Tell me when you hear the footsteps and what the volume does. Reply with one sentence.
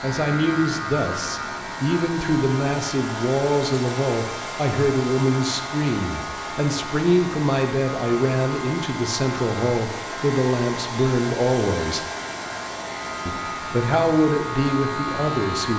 You can't hear the footsteps here.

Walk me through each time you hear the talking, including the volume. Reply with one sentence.
The talking can be heard from 0.0 to 12.1 s, at a steady volume; and briefly from 13.2 to 15.7 s.